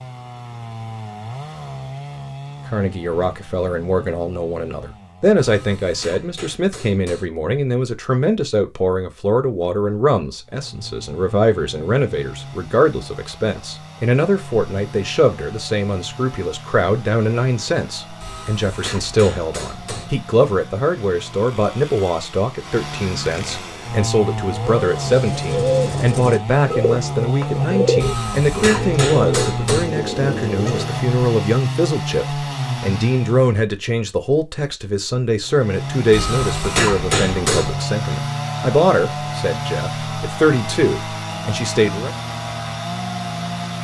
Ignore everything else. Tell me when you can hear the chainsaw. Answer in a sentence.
You can hear the chainsaw from 0.0 to 5.8 s, from 10.4 to 33.6 s and from 35.5 to 43.7 s.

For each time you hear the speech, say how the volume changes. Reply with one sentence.
You can hear the speech from 2.6 to 42.1 s, at a steady volume.